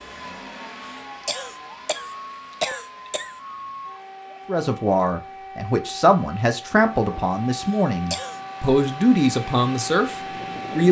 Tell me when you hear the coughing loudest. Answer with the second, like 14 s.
3 s.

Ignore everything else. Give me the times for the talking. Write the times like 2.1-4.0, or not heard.
4.5-10.8.